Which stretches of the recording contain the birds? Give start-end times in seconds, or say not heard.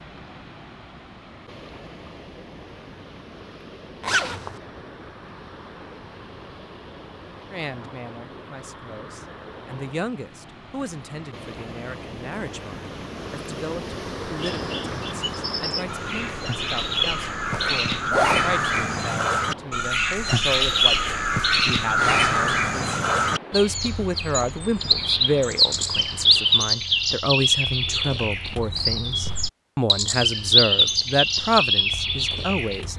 14.3-32.9.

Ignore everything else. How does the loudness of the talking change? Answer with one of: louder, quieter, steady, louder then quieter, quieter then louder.
louder.